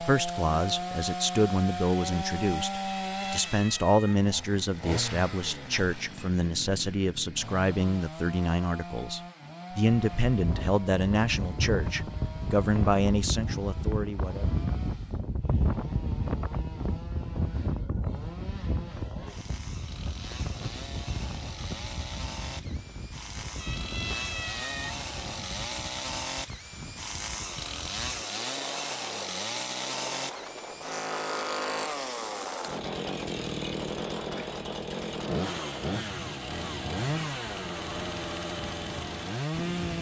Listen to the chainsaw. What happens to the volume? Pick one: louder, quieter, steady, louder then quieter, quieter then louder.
quieter then louder.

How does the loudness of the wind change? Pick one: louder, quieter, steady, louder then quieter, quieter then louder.
quieter.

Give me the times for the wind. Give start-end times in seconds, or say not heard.
9.9-39.9.